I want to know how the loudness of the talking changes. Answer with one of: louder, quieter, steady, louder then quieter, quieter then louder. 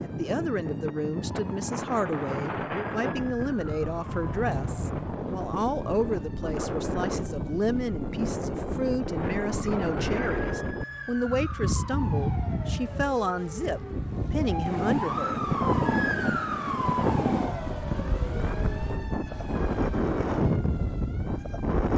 steady.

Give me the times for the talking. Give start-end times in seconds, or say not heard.
0.0-15.4.